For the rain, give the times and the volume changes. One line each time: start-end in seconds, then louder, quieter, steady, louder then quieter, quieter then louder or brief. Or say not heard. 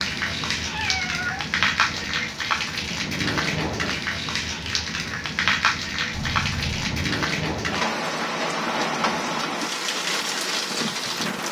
0.0-11.4 steady.